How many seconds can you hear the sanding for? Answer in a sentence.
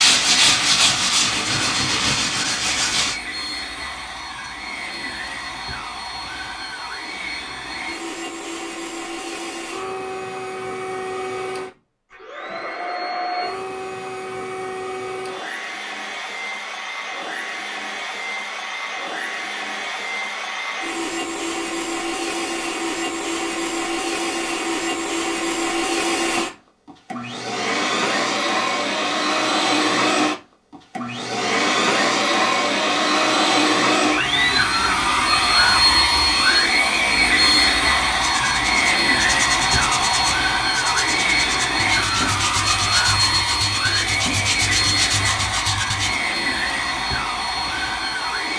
You can hear the sanding for 11 seconds altogether.